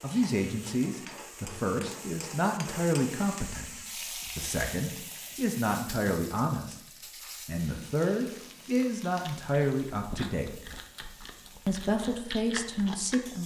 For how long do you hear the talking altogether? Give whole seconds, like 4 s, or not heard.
12 s.